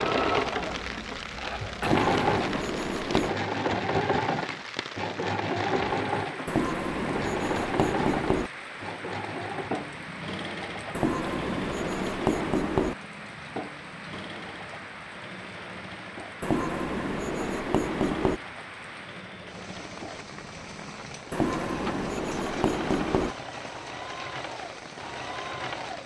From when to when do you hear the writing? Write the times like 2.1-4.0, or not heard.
1.8-3.4, 6.5-8.5, 10.9-12.9, 16.4-18.4, 21.3-23.4.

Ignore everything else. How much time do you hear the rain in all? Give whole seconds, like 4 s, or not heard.
26 s.